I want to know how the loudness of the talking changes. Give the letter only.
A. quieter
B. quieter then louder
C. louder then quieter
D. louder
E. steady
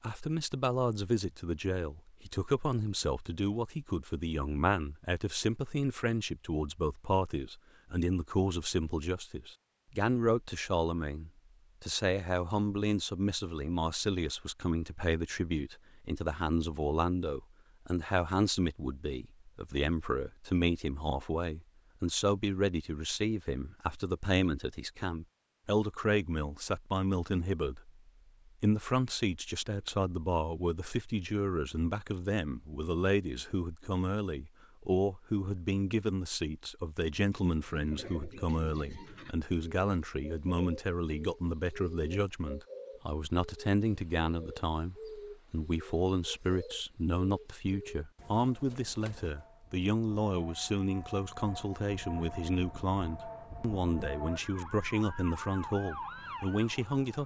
E.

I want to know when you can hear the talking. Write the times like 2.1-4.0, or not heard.
0.0-27.9, 28.6-57.2.